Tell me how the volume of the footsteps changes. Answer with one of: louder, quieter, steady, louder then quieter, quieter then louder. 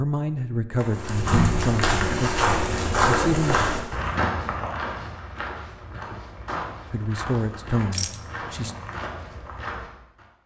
quieter.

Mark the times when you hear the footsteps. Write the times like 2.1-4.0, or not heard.
0.8-10.2.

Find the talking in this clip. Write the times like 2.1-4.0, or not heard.
0.0-3.6, 6.9-8.8.